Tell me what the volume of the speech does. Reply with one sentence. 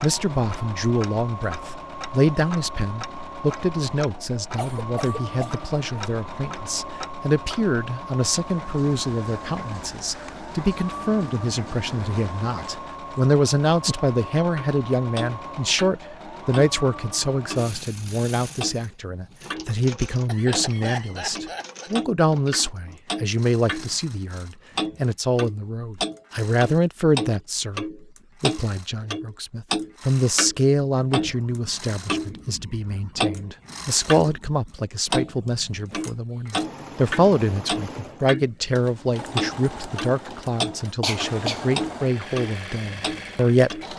The volume of the speech stays about the same.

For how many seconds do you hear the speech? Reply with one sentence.
You can hear the speech for 44 seconds altogether.